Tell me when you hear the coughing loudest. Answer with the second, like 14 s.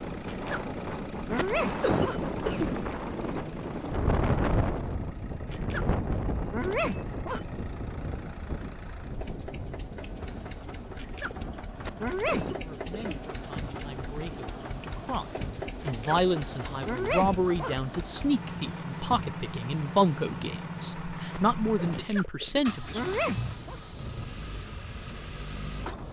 2 s.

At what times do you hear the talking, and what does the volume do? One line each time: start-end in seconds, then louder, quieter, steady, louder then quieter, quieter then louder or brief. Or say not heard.
12.5-23.0 louder.